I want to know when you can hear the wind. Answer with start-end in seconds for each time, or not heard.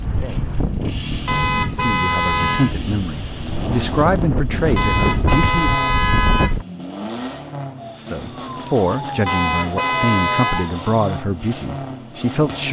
0.0-6.7.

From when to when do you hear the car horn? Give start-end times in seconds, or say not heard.
1.2-2.8, 4.8-6.5, 9.2-10.7.